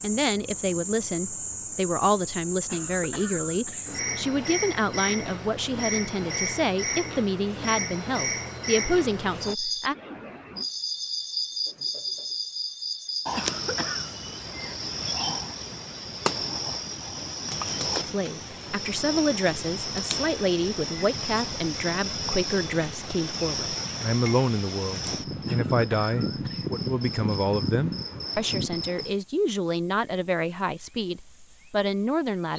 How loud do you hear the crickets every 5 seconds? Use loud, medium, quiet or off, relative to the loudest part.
loud, loud, loud, loud, loud, loud, quiet.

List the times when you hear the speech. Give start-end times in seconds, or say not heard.
0.0-9.9, 18.1-32.5.